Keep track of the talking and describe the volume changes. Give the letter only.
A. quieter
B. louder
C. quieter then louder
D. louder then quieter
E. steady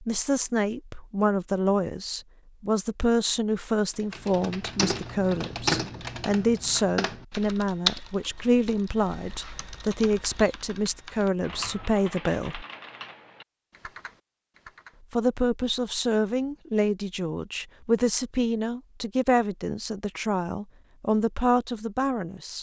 E.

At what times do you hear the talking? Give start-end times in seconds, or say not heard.
0.0-12.7, 15.1-22.5.